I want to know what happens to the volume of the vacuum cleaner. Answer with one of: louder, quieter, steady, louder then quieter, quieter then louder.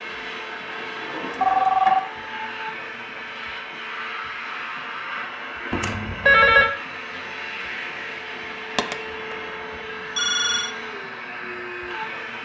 steady.